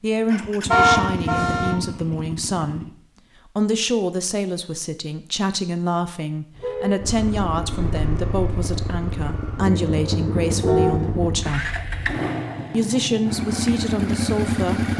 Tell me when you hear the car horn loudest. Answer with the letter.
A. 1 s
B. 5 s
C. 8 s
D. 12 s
A.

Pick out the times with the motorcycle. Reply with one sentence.
The motorcycle can be heard from 0.2 to 2.9 s and from 7.0 to 14.9 s.